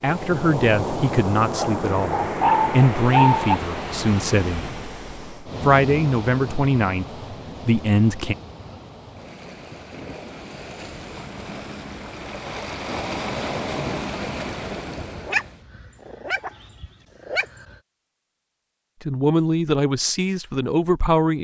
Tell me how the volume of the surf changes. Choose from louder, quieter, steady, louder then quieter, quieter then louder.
quieter then louder.